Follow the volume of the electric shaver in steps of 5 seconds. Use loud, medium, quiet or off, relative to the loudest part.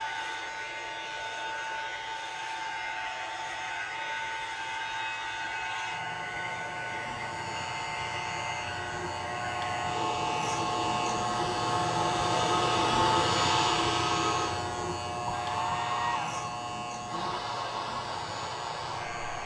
quiet, medium, loud, medium.